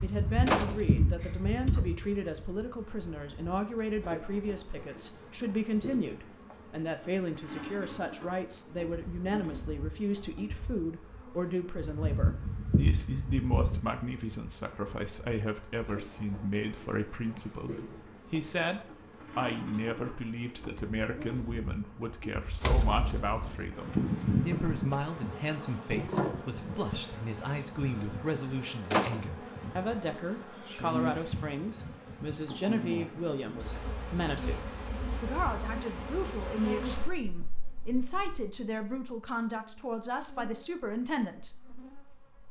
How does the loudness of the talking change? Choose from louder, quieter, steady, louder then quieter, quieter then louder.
steady.